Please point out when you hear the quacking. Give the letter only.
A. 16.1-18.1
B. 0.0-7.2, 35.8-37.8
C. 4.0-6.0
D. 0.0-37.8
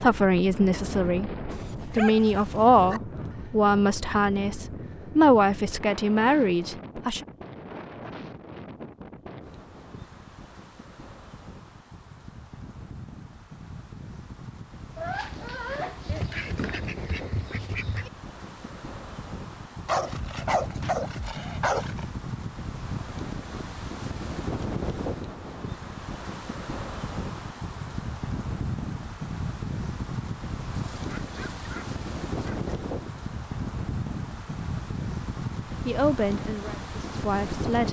A.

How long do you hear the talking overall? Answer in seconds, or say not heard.
9 s.